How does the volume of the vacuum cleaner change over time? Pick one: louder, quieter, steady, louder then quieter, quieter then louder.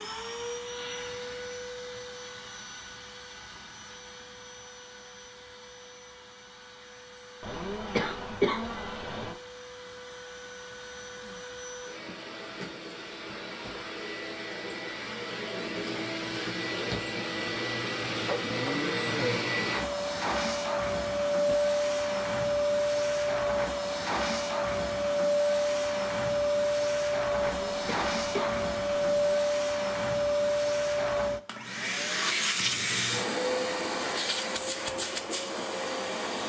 louder.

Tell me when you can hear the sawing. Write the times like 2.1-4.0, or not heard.
not heard.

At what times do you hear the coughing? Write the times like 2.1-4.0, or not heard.
7.4-9.3, 27.4-29.4.